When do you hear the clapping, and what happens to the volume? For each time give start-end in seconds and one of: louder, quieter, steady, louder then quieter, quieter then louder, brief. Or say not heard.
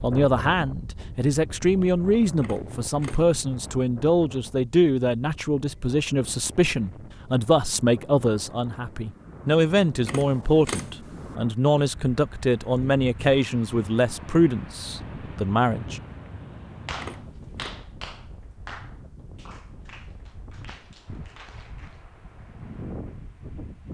16.9-22.1 quieter.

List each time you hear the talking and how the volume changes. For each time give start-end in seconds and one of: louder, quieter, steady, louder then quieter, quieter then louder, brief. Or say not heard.
0.0-16.0 steady.